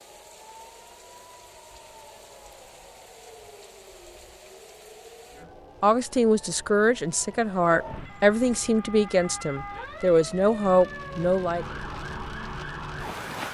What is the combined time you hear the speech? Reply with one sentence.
You can hear the speech for 6 seconds altogether.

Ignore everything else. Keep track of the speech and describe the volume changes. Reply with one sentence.
The volume of the speech stays about the same.